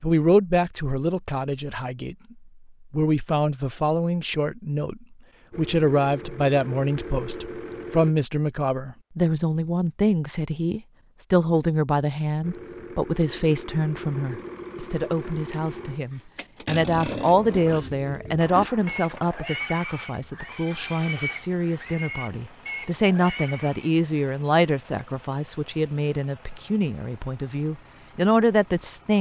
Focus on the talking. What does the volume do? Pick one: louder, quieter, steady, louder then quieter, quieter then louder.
steady.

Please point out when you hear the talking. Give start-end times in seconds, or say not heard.
0.0-29.1.